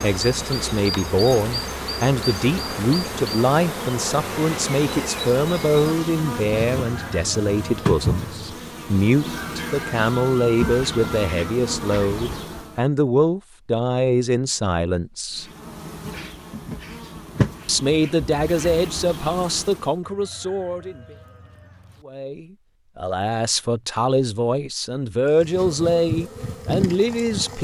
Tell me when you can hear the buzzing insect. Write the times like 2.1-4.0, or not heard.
0.0-12.8, 15.3-20.0, 25.4-27.6.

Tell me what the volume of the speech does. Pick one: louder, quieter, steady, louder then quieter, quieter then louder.
steady.